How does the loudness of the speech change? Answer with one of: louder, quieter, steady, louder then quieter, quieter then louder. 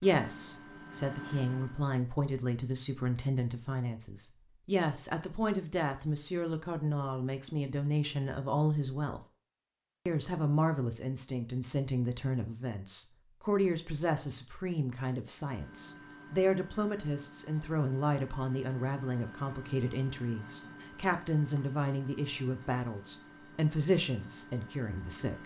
steady.